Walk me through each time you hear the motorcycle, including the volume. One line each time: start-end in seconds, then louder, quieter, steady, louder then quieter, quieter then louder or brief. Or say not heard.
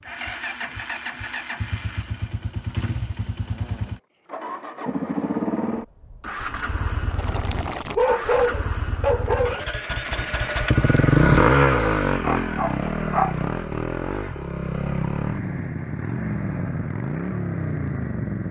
0.0-18.4 louder then quieter.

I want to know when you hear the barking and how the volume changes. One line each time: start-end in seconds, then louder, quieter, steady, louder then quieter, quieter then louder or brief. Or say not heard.
7.1-13.4 quieter then louder.